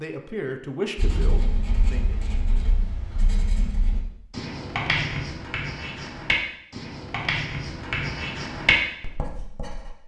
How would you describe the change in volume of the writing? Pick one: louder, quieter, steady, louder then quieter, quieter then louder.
louder.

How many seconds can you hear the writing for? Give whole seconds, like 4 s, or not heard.
9 s.